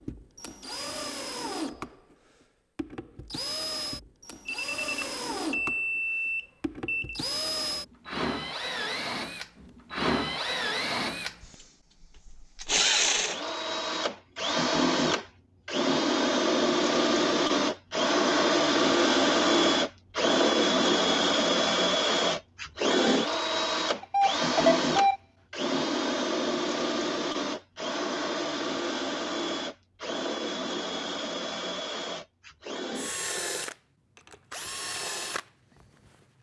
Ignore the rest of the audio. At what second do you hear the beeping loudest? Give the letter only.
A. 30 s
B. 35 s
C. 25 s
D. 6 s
C.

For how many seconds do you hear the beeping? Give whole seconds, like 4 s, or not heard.
4 s.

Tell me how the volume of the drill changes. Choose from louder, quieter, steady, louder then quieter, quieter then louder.
louder then quieter.